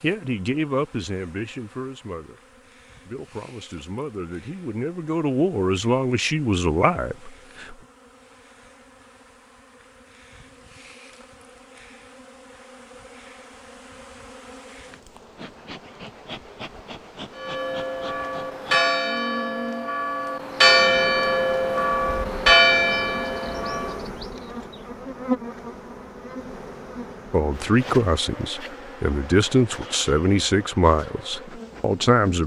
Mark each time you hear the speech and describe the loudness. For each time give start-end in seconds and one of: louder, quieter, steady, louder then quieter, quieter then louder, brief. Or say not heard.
0.0-2.4 brief
3.0-7.8 louder
27.3-32.4 quieter.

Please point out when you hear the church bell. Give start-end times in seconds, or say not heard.
17.4-24.0.